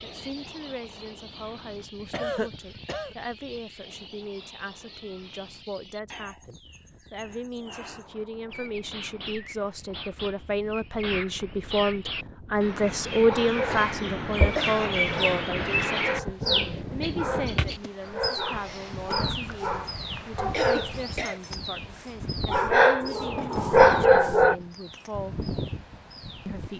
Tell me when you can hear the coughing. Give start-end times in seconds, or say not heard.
1.9-3.1, 13.5-14.8, 20.5-21.4.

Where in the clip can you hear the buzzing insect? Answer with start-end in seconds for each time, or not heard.
not heard.